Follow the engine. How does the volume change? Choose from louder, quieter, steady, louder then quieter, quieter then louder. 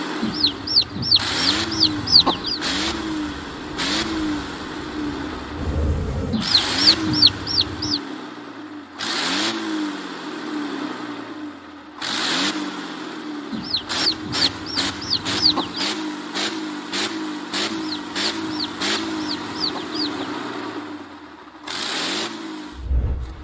steady.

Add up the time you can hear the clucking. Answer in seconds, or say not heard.
9 s.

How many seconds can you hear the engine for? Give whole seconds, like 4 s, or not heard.
23 s.